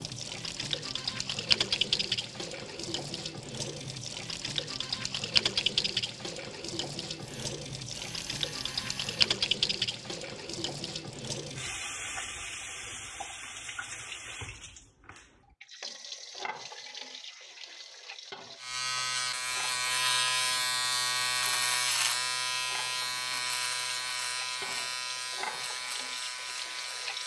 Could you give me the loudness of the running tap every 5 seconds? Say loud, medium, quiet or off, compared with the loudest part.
loud, loud, medium, quiet, quiet, medium.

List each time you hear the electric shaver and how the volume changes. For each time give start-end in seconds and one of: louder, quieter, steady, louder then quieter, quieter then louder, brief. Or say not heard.
7.2-9.2 brief
18.6-27.2 quieter.